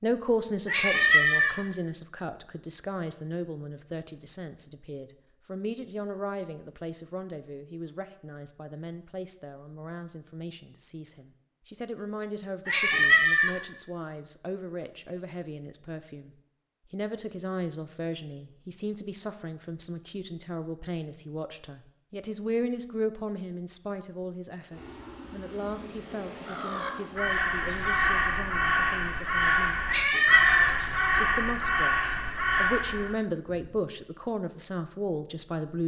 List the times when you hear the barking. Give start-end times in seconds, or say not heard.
not heard.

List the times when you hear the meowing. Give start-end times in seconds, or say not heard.
0.7-1.6, 12.7-13.6, 29.9-30.8.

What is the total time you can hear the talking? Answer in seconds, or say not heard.
36 s.